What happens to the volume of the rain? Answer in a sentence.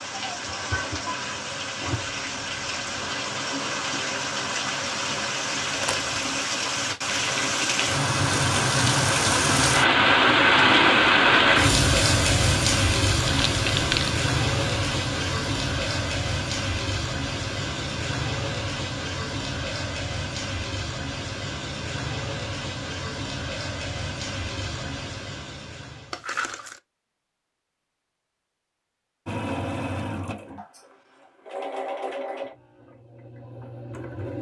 The loudness of the rain goes up, then down.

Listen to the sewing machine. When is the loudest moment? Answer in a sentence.
The loudest moment of the sewing machine is at 30 seconds.